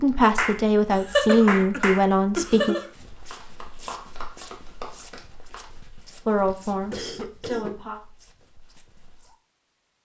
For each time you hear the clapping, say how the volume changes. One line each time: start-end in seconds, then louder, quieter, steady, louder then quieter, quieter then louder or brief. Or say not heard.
0.3-5.7 quieter.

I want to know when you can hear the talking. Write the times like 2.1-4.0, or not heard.
0.0-2.8, 6.2-8.0.